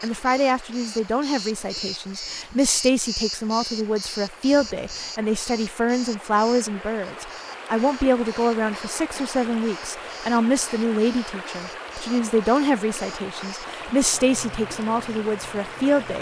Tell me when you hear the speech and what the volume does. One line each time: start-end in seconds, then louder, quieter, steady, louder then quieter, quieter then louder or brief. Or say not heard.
0.0-16.1 steady.